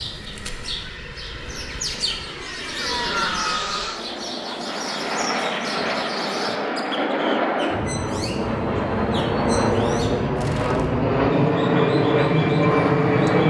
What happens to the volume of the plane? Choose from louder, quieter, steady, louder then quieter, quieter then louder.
louder.